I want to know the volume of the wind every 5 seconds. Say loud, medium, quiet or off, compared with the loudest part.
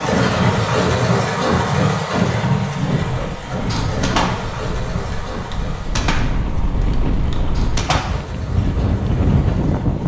medium, loud.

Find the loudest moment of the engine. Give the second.
1 s.